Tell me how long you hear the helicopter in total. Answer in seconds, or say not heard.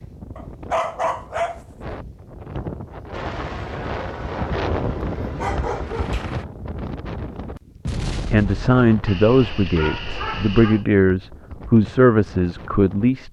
3 s.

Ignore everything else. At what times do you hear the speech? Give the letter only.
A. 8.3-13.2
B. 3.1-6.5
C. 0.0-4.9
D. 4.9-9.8
A.